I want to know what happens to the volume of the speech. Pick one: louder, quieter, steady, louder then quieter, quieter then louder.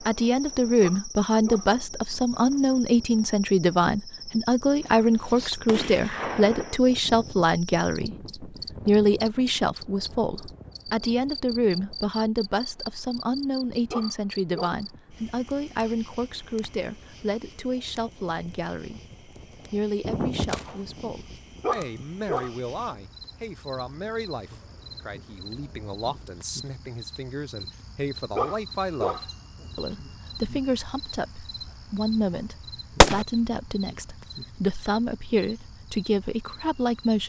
quieter then louder.